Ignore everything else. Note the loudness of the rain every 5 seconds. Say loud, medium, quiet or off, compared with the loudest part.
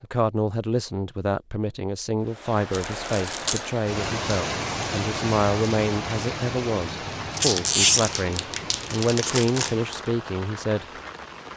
loud, loud, medium.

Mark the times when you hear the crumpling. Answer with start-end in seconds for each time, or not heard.
2.7-3.6, 7.3-10.0.